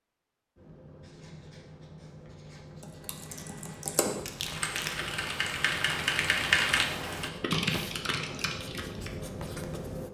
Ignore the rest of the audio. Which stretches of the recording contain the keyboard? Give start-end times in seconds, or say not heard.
2.8-9.1.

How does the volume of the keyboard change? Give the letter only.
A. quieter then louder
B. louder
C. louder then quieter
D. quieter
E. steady
C.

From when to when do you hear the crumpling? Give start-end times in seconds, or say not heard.
4.0-5.0.